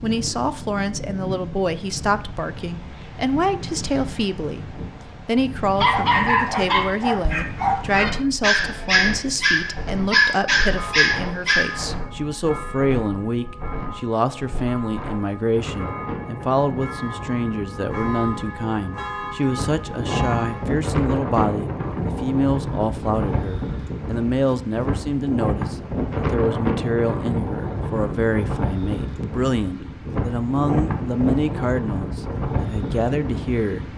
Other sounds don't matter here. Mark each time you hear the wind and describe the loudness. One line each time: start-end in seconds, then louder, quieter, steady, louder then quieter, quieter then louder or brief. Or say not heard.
0.0-33.9 louder.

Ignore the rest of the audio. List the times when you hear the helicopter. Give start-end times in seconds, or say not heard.
not heard.